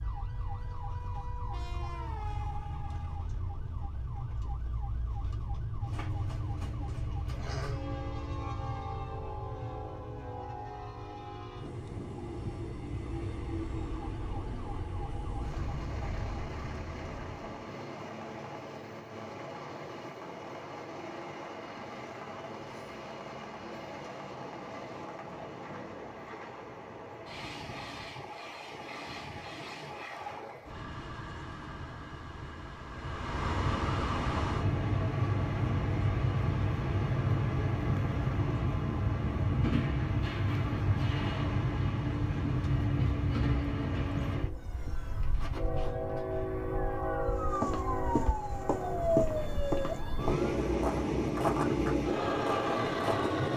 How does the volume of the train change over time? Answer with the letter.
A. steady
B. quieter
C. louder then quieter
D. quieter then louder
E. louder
E.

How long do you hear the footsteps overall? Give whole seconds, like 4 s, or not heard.
6 s.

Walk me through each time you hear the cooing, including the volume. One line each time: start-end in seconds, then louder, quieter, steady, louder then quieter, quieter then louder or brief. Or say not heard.
not heard.